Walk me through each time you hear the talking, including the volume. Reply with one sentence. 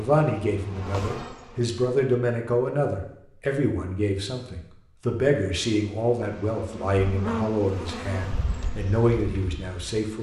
The talking can be heard from 0.0 to 10.1 s, at a steady volume.